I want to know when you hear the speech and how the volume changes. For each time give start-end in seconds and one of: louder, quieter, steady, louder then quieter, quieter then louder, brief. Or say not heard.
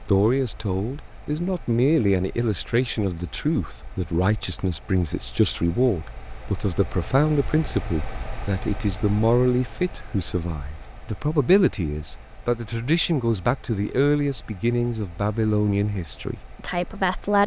0.0-17.4 steady.